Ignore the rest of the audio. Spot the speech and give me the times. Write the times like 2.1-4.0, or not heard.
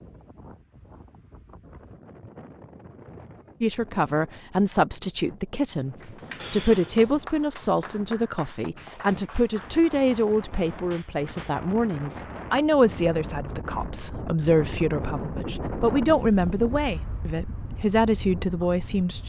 3.6-19.2.